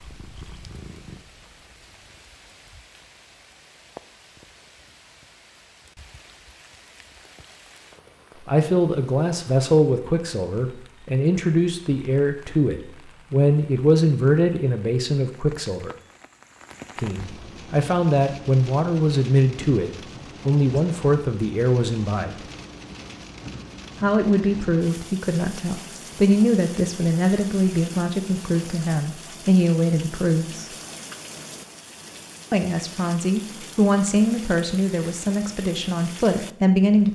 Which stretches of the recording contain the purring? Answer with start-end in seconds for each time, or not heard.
0.0-2.4.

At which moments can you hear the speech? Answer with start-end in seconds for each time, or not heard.
8.4-15.9, 16.9-22.4, 24.0-30.7, 32.5-37.1.